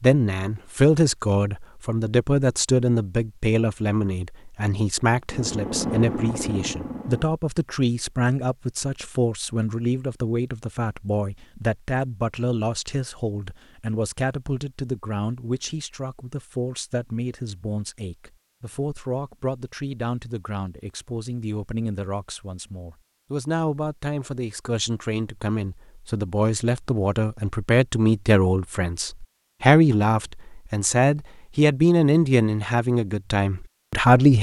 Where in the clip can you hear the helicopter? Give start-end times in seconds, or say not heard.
5.2-7.3.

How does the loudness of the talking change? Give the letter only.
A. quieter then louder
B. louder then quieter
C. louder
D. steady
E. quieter
A.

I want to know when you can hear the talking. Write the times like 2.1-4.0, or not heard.
0.0-34.3.